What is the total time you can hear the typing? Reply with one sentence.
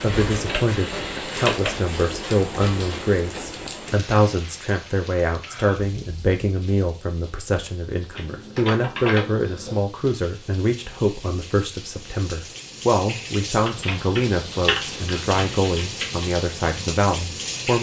You can hear the typing for 6 seconds altogether.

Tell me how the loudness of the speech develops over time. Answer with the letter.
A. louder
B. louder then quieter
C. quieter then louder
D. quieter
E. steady
E.